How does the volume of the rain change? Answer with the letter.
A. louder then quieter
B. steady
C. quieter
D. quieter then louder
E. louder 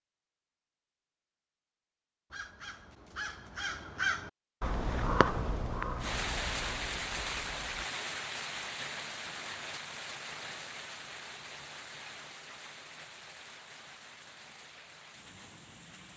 C.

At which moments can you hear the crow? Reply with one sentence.
You can hear the crow from 2.3 to 7.9 s.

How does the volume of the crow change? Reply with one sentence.
The volume of the crow goes up, then down.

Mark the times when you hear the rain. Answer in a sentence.
The rain can be heard from 6.0 to 16.1 s.